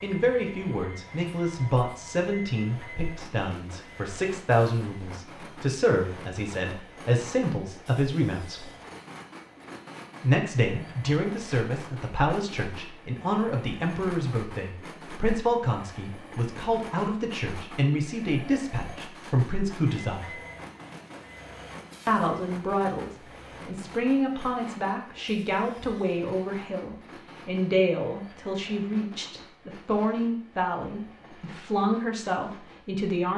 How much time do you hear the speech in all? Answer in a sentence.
The speech can be heard for 30 seconds in total.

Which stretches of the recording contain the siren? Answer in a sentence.
You can't hear the siren here.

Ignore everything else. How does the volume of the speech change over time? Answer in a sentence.
The volume of the speech stays about the same.